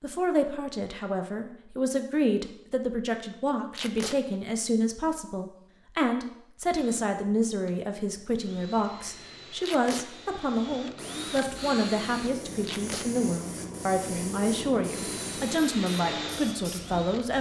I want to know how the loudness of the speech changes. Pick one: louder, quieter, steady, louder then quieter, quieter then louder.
steady.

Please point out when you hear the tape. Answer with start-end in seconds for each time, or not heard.
3.7-4.2, 9.6-10.1, 12.6-13.1.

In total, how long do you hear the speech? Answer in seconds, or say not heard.
17 s.